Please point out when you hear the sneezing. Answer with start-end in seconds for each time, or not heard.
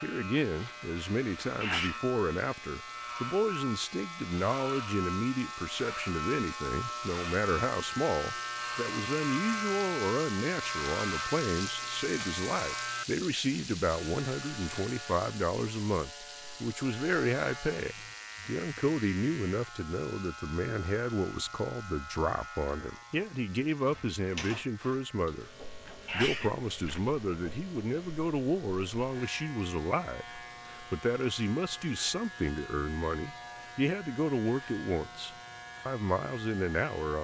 1.4-2.0, 25.9-27.1.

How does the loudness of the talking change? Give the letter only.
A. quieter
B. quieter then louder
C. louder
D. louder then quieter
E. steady
E.